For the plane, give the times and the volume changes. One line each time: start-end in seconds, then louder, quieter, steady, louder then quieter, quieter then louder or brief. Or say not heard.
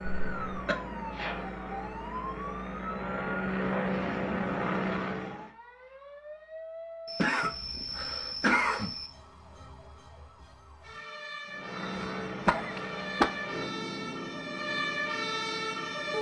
0.0-5.5 louder
11.4-16.1 quieter.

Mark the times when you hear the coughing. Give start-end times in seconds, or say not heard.
0.0-0.8, 7.0-9.1, 12.4-13.2.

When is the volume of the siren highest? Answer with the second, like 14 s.
15 s.